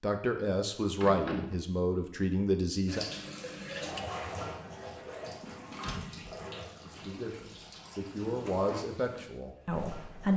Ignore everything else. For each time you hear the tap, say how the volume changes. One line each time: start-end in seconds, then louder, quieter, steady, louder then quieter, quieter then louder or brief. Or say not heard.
2.9-10.3 quieter.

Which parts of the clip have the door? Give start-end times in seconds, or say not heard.
1.0-1.6, 5.8-6.4.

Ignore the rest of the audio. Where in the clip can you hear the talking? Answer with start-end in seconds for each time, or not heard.
0.0-3.0, 6.8-10.3.